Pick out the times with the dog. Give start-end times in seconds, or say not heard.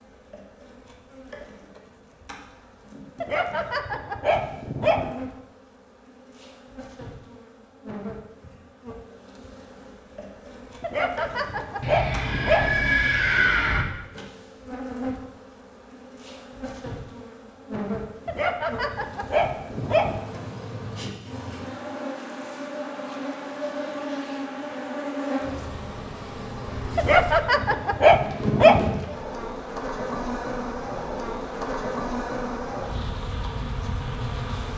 3.2-5.1, 10.8-12.8, 18.2-20.2, 26.9-28.9.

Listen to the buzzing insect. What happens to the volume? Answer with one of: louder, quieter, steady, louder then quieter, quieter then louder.
louder.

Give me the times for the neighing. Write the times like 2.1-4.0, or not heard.
11.8-13.8.